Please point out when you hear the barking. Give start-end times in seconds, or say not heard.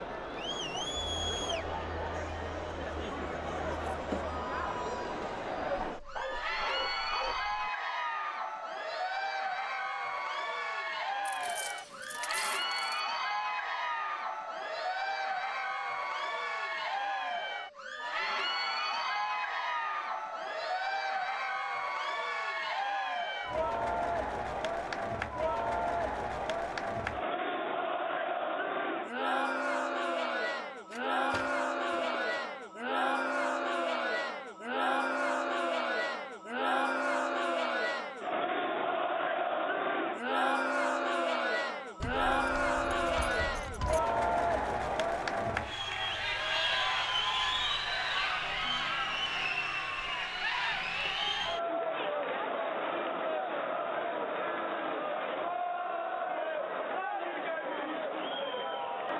5.8-7.7.